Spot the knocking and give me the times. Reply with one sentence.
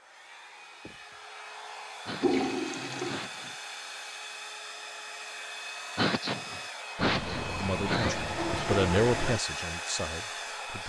You can't hear the knocking here.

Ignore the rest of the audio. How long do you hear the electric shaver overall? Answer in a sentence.
You can't hear the electric shaver here.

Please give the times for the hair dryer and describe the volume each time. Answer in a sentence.
You can hear the hair dryer from 0.0 to 10.8 s, getting louder.